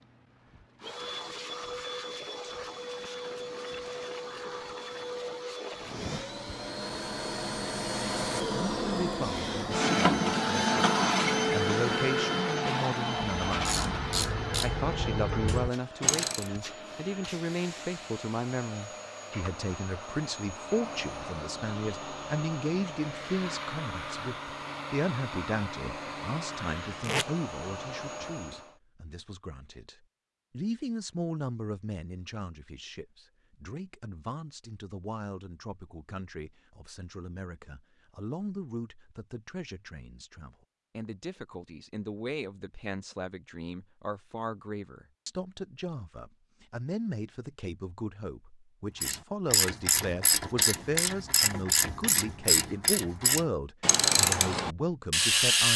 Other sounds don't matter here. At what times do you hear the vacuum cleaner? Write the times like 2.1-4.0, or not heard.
0.0-28.8.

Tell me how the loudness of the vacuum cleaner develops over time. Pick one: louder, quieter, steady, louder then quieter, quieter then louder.
louder then quieter.